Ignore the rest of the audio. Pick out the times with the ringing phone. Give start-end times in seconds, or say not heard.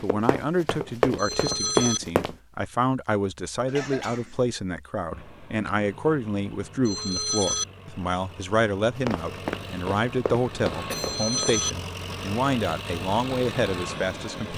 1.1-2.0, 6.8-7.7, 10.9-11.7.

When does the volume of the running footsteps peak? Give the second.
2 s.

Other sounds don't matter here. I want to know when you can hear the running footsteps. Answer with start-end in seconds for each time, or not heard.
0.0-2.4, 8.9-11.6.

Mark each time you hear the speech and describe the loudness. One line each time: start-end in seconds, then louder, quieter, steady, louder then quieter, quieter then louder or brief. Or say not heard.
0.0-14.5 steady.